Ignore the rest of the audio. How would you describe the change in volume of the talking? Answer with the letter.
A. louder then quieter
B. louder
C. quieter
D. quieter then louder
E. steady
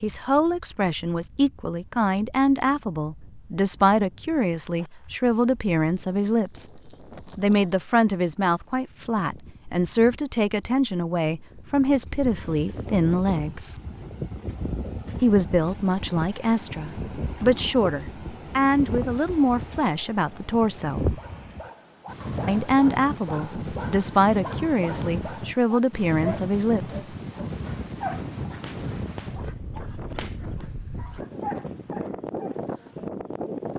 E.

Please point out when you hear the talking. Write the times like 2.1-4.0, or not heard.
0.0-13.8, 15.2-21.1, 22.4-27.1.